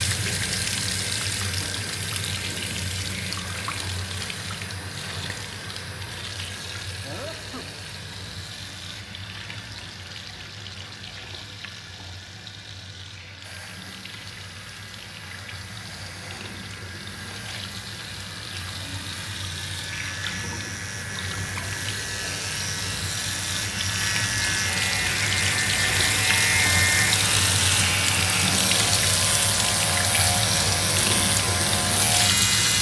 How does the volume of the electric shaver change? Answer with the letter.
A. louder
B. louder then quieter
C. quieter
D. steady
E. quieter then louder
A.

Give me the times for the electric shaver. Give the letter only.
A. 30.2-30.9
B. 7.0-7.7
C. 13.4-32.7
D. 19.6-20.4
C.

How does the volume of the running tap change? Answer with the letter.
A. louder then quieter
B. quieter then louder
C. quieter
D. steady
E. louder
B.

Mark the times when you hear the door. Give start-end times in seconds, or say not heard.
not heard.